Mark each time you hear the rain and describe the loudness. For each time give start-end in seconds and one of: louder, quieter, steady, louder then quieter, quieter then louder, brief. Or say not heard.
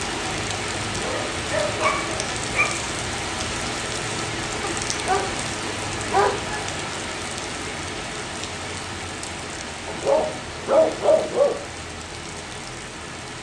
0.0-13.3 quieter.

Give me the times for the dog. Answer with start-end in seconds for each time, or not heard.
1.0-2.8, 4.8-6.5, 9.8-11.6.